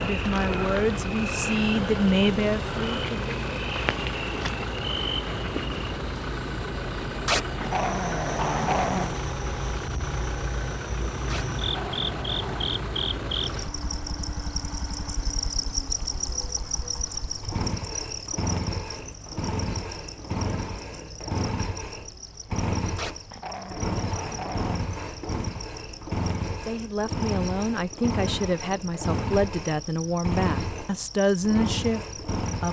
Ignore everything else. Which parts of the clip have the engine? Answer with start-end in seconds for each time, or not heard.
0.0-32.6.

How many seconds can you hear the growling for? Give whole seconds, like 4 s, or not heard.
5 s.